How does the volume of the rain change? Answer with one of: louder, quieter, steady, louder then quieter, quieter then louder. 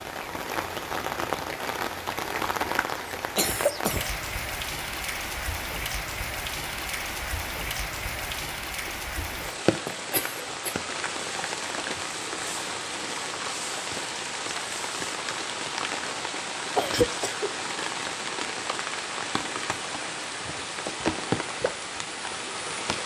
steady.